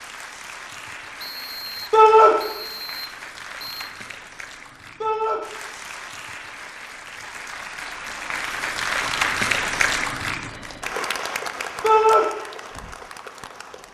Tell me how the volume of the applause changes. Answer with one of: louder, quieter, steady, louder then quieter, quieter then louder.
louder then quieter.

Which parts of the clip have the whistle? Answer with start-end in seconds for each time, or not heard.
1.1-3.9.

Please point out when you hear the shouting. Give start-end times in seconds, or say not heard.
1.9-2.4, 5.0-5.4, 11.8-12.2.